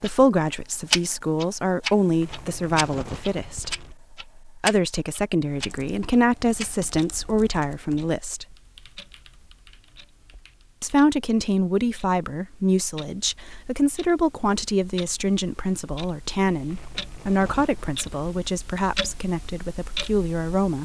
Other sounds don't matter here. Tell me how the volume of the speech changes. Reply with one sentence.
The volume of the speech stays about the same.